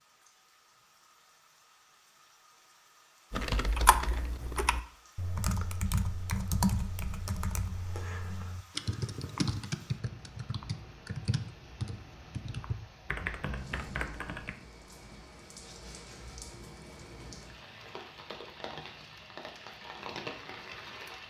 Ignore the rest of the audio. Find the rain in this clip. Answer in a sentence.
The rain can be heard from 0.0 to 21.2 s.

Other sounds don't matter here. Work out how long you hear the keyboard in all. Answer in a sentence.
The keyboard can be heard for 11 seconds in total.